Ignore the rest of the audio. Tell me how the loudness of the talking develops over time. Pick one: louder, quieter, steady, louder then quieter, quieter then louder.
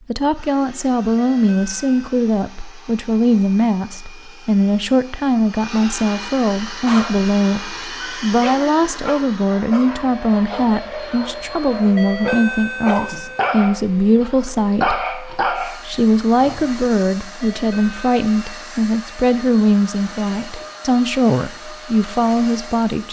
steady.